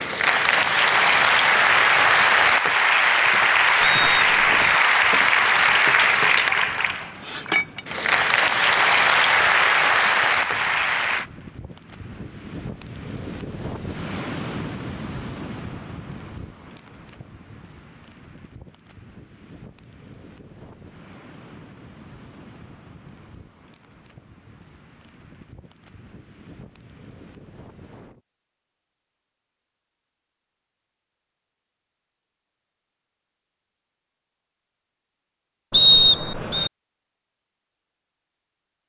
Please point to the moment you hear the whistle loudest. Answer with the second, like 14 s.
36 s.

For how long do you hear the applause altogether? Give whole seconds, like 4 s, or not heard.
11 s.